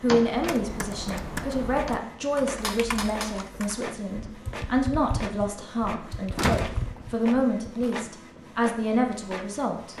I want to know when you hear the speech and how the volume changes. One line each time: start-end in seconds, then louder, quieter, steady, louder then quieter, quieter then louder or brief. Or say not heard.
0.0-9.9 steady.